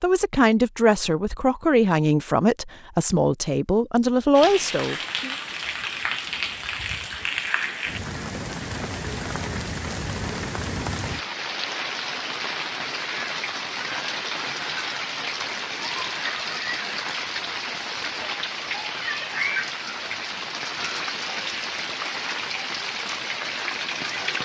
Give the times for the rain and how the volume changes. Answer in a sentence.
The rain can be heard from 4.3 to 24.3 s, at a steady volume.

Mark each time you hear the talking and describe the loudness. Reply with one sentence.
The talking can be heard from 0.0 to 5.3 s, at a steady volume.